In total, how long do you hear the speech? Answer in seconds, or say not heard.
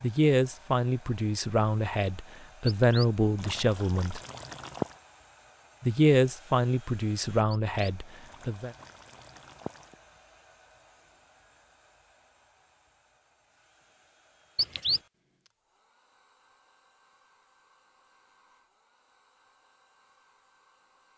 7 s.